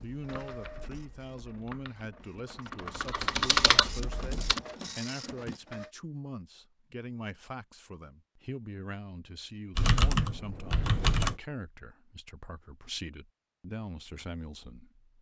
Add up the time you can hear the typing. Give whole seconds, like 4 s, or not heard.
6 s.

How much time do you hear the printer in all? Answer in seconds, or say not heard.
6 s.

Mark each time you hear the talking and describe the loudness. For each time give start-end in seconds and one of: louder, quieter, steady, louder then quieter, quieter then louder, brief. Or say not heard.
0.0-15.1 steady.